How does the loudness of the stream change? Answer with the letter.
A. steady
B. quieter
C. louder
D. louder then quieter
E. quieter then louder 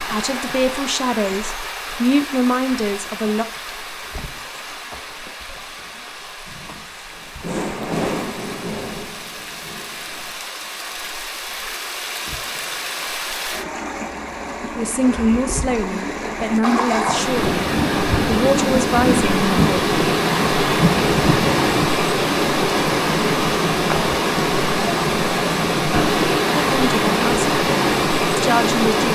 C.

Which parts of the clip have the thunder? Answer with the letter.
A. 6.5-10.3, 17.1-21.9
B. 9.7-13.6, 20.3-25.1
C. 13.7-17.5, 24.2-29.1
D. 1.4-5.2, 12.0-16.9
A.